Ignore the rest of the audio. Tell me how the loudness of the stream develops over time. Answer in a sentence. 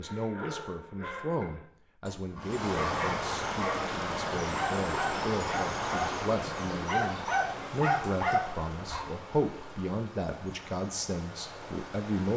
The loudness of the stream goes down.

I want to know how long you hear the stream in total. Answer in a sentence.
The stream can be heard for 10 seconds in total.